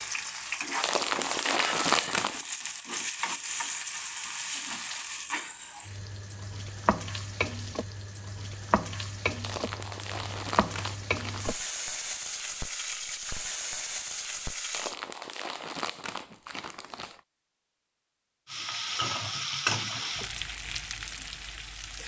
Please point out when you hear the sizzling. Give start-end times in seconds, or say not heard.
0.0-14.9, 18.4-22.0.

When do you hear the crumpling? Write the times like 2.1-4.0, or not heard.
0.8-2.4, 9.4-11.6, 14.7-17.2.